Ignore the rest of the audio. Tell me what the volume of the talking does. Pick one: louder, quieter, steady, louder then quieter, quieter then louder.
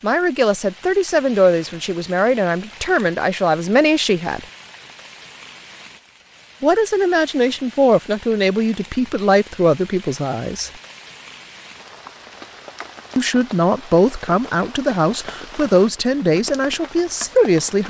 steady.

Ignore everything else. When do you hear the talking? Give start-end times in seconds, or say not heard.
0.0-4.5, 6.6-10.7, 13.2-17.8.